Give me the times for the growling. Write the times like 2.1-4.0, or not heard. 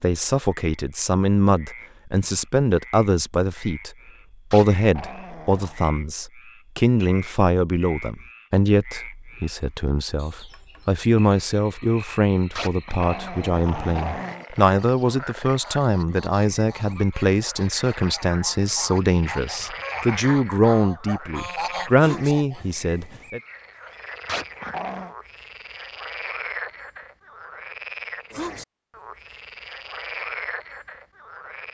4.5-5.8, 12.6-14.4, 24.2-25.1.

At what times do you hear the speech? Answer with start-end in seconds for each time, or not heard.
0.0-23.4.